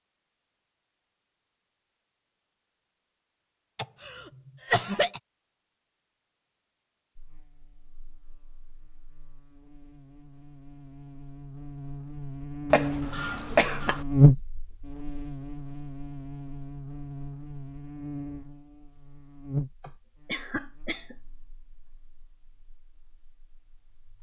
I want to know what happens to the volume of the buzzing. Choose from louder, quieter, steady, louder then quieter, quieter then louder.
louder then quieter.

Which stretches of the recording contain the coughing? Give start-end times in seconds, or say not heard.
3.8-5.2, 12.7-14.1, 19.8-21.1.